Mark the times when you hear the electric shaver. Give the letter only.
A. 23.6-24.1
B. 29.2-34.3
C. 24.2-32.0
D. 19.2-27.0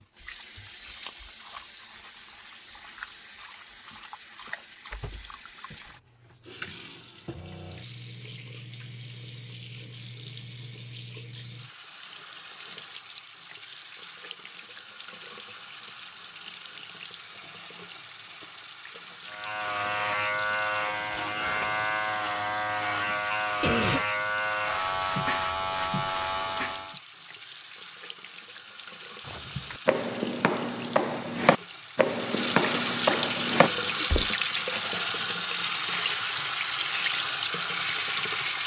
D.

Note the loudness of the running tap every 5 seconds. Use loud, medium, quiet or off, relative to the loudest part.
quiet, quiet, quiet, quiet, quiet, quiet, loud, loud.